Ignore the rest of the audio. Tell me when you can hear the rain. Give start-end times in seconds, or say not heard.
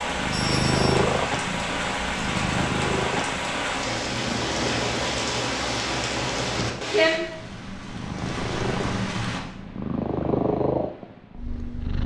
0.0-9.4.